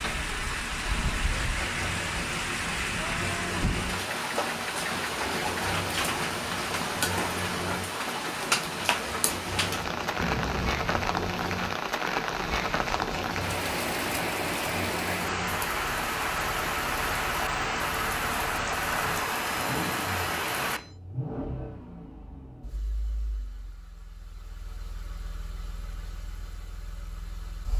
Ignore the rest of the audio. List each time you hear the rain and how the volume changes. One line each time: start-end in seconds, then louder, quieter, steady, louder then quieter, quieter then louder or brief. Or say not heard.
0.0-20.8 steady.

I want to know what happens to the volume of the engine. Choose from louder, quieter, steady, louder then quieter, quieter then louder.
quieter.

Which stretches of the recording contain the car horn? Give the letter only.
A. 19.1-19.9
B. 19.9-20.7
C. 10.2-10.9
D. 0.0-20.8
C.